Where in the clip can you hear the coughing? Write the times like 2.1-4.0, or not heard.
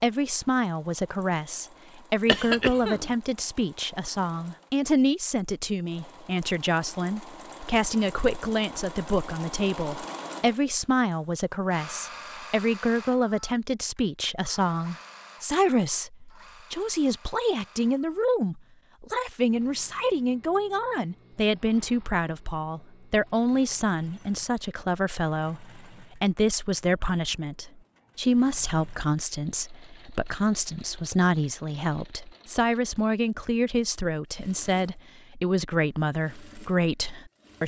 2.2-3.1.